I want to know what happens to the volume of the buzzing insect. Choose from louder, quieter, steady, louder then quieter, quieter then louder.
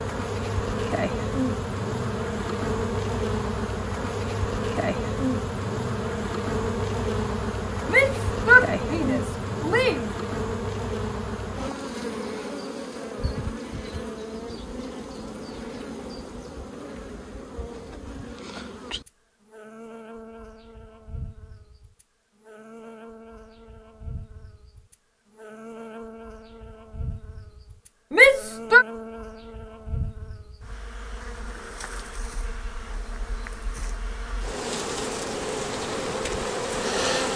quieter then louder.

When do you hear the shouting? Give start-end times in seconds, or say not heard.
7.9-10.1, 28.1-28.9.